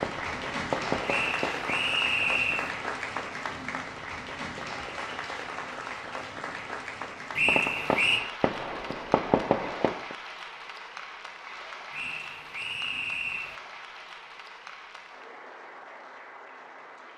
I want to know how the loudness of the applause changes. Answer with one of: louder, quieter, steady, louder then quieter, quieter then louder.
quieter.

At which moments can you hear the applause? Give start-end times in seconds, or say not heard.
0.0-17.1.